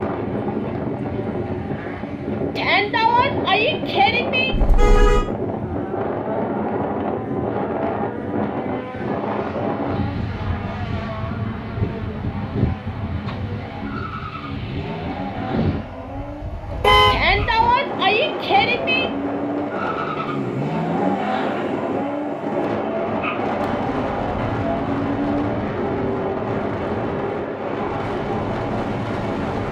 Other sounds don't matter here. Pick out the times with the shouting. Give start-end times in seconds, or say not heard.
2.5-4.5, 17.1-19.1.